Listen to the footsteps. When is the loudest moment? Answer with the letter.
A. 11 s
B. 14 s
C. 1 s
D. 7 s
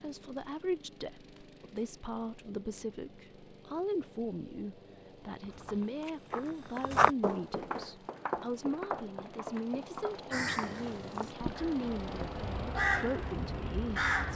D.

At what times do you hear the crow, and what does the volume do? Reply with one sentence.
The crow can be heard from 10.3 to 14.3 s, getting louder then quieter.